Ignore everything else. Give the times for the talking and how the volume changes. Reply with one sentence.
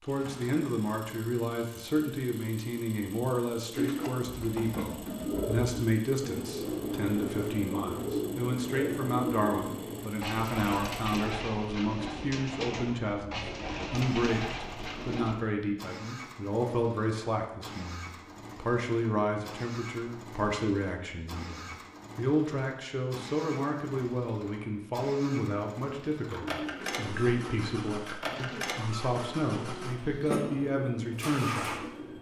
The talking can be heard from 0.0 to 31.9 s, at a steady volume.